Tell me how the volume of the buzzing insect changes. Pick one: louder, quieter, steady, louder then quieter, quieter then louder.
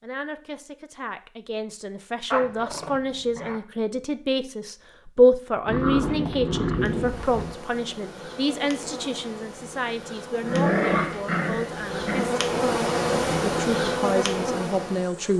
louder.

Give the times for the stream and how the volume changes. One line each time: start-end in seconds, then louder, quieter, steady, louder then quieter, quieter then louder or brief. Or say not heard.
not heard.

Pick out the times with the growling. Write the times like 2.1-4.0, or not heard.
2.3-3.6, 5.7-7.5, 10.4-12.3.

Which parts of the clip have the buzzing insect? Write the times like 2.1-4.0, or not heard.
6.8-15.3.